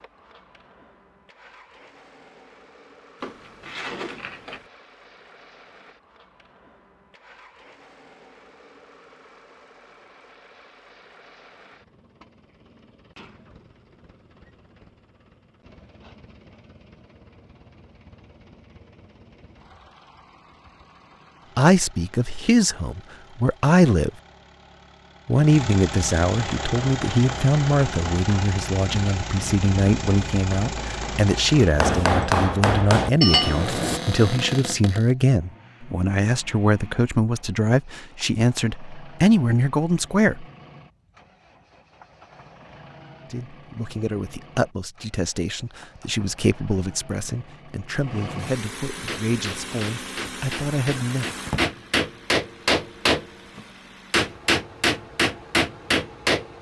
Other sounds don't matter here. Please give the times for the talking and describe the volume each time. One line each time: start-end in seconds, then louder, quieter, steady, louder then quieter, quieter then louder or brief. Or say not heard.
21.6-24.1 brief
25.2-40.5 steady
43.3-51.3 steady.